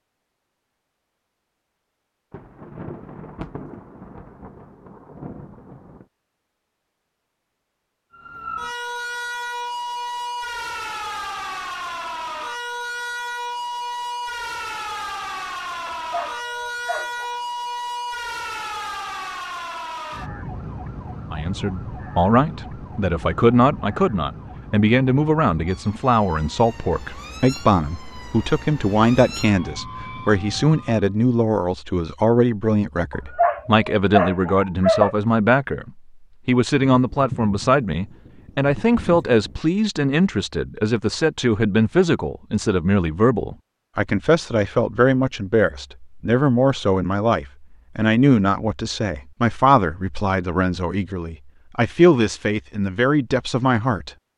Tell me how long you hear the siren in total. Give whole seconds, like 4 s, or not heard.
23 s.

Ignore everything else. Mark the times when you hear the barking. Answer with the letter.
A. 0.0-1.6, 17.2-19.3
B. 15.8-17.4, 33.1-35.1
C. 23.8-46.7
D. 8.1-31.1
B.